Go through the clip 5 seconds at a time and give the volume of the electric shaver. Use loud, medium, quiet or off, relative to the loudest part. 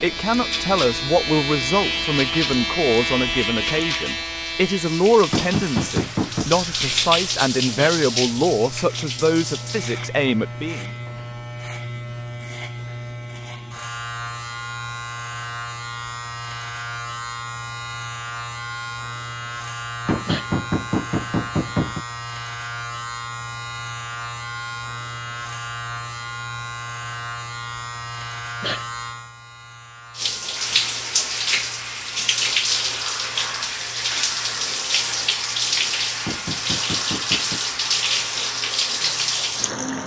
loud, medium, medium, medium, medium, medium, quiet, quiet.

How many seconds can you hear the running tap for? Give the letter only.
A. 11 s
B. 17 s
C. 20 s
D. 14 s
C.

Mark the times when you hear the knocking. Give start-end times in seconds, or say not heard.
5.3-6.5, 20.1-22.0, 36.2-37.6.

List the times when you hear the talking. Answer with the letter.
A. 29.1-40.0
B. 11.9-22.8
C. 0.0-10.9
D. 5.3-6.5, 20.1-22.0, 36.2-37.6
C.